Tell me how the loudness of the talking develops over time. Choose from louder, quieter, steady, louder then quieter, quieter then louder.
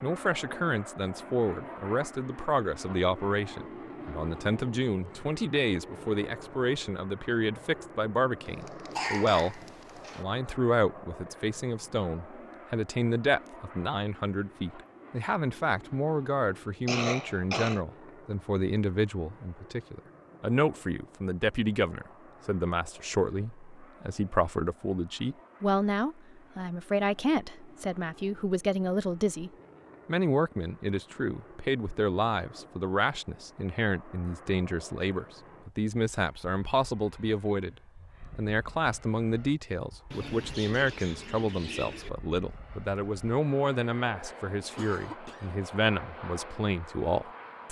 steady.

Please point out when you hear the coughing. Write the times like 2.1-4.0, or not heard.
8.9-10.2, 16.9-17.8, 44.8-45.5.